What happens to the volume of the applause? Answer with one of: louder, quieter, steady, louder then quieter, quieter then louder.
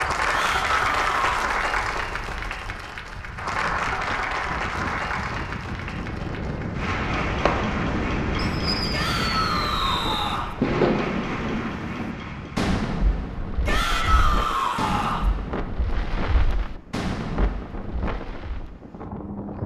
quieter.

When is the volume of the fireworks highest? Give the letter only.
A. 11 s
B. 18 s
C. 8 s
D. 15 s
A.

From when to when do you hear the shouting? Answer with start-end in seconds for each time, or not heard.
0.2-1.4, 8.9-10.6, 13.7-15.2.